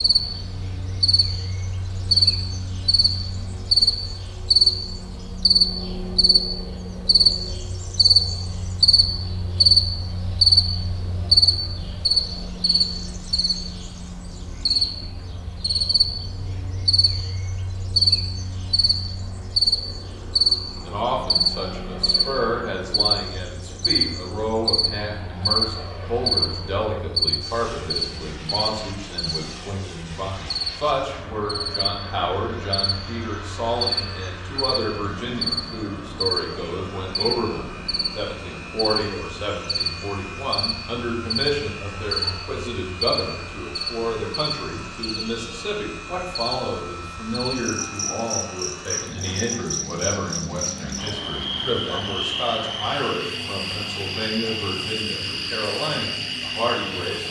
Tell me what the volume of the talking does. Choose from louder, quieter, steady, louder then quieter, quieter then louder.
steady.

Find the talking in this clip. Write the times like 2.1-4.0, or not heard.
20.8-57.2.